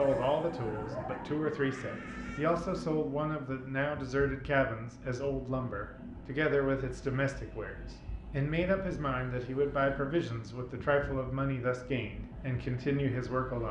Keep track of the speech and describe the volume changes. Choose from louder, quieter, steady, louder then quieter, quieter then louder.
steady.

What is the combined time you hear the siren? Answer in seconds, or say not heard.
3 s.